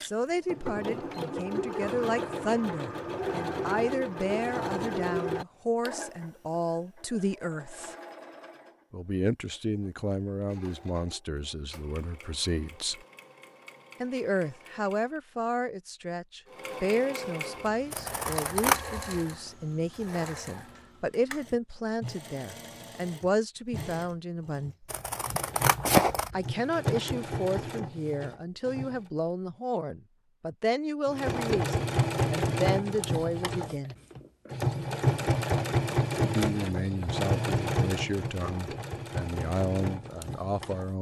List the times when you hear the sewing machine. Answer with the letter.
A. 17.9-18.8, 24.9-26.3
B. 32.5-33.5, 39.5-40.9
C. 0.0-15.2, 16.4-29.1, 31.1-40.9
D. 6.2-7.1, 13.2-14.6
C.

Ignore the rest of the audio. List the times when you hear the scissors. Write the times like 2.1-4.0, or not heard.
17.9-18.8, 24.9-26.3.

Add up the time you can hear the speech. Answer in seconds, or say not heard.
35 s.